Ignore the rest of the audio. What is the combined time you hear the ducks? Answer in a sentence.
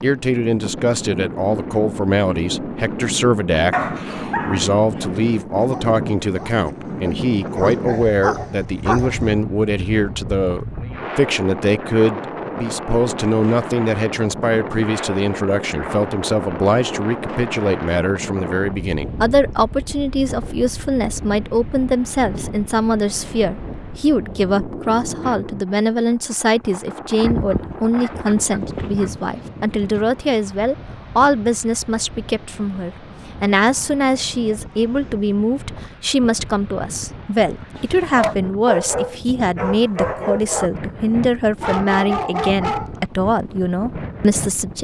You can hear the ducks for 2 seconds altogether.